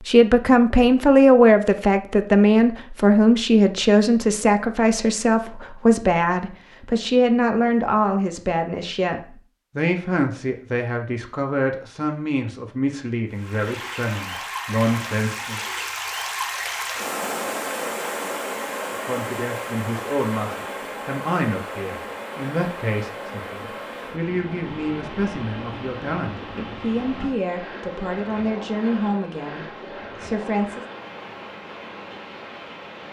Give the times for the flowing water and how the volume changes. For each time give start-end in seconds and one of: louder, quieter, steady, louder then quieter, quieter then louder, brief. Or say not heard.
13.2-33.0 quieter.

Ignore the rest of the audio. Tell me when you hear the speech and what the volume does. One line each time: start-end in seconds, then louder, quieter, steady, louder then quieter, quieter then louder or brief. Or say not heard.
0.1-15.6 quieter
19.0-30.9 steady.